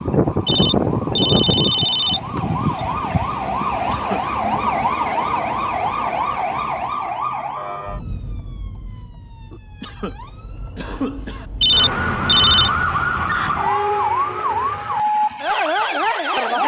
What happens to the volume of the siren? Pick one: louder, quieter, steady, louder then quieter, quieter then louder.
quieter then louder.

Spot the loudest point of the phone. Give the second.
12 s.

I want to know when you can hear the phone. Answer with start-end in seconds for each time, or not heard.
0.5-2.6, 11.6-12.7.